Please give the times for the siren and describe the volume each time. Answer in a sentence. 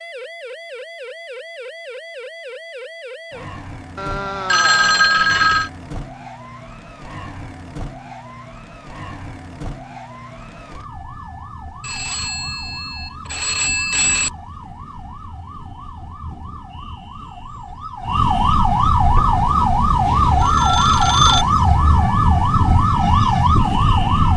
The siren can be heard from 0.0 to 24.3 s, getting louder.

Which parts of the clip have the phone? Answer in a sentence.
The phone can be heard from 4.0 to 5.7 s, from 11.8 to 14.3 s and from 19.9 to 21.4 s.